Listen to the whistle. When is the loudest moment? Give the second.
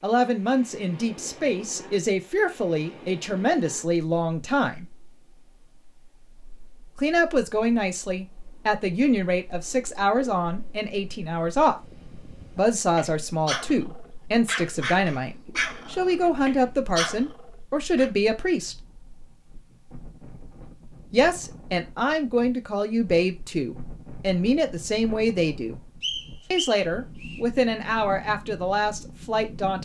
26 s.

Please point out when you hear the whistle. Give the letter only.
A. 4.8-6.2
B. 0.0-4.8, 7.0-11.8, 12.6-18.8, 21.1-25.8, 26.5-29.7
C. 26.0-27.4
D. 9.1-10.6
C.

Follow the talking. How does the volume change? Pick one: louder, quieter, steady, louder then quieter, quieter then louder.
steady.